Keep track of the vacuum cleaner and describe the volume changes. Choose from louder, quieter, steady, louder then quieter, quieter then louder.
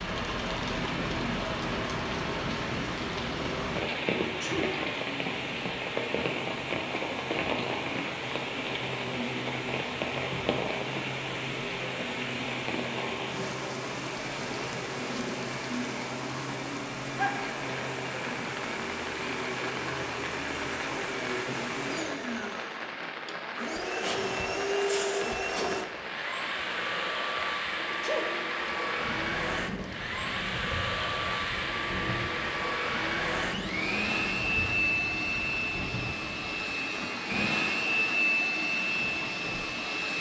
louder.